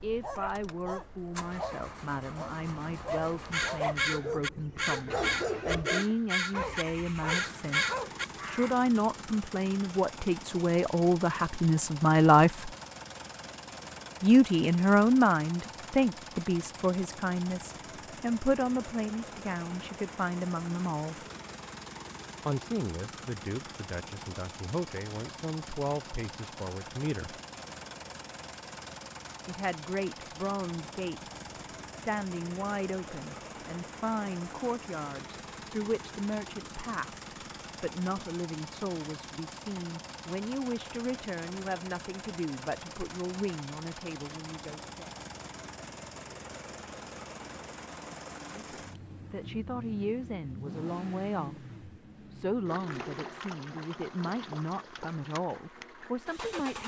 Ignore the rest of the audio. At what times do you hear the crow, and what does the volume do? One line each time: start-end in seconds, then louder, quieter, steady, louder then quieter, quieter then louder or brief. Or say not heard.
3.5-8.8 steady.